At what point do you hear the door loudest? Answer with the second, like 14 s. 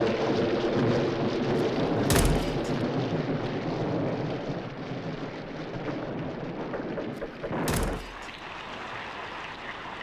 2 s.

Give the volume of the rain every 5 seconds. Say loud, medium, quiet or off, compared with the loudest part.
loud, medium.